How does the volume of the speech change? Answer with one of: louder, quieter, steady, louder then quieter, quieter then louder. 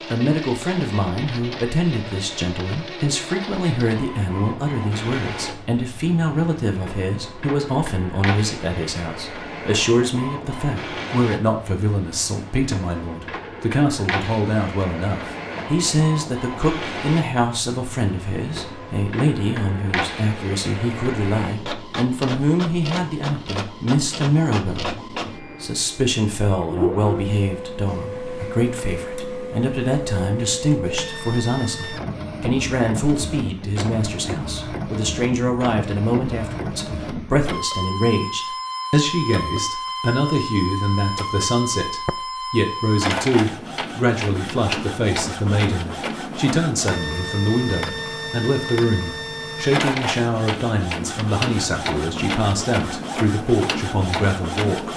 steady.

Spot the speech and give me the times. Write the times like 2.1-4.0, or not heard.
0.1-54.9.